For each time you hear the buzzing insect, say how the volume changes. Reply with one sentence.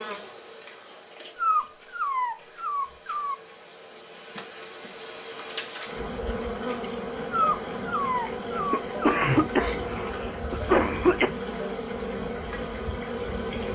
The buzzing insect can be heard from 0.0 to 13.6 s, getting louder.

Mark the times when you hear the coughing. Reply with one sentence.
The coughing can be heard from 8.7 to 11.3 s.